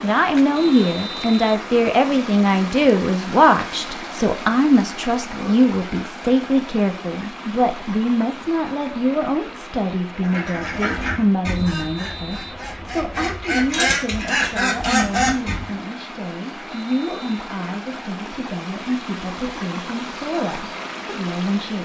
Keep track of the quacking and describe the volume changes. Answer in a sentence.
The volume of the quacking goes down, then up.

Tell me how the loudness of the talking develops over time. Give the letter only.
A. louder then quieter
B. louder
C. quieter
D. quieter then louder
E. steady
C.